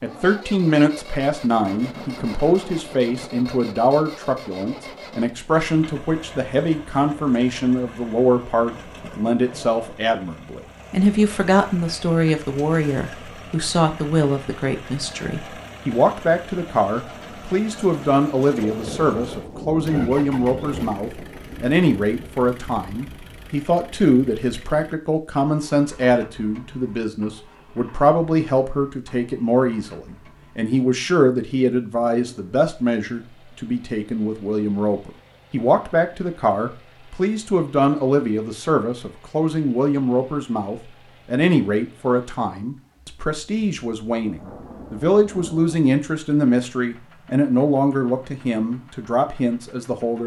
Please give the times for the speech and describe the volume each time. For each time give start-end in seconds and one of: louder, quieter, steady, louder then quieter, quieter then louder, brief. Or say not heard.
0.0-50.2 steady.